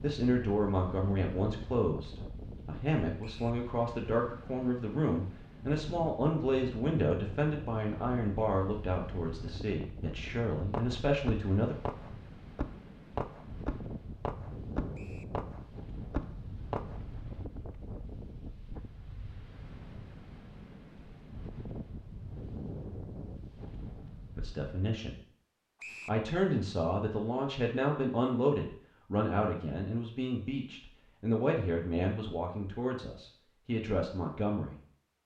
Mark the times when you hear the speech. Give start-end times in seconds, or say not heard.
0.0-11.8, 24.4-25.1, 26.1-34.8.